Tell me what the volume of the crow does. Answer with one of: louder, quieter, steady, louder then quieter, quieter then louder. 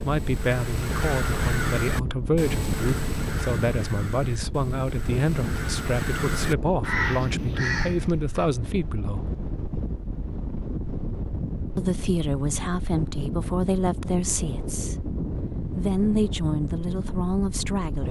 quieter then louder.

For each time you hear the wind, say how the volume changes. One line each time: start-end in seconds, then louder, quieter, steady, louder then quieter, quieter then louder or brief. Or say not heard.
0.0-18.0 steady.